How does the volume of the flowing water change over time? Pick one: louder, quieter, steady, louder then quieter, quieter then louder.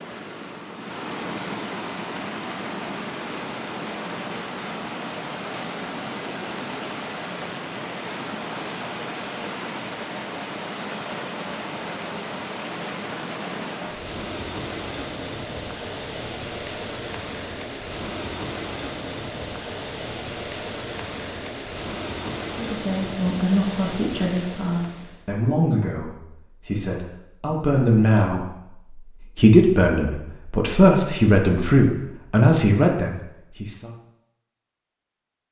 steady.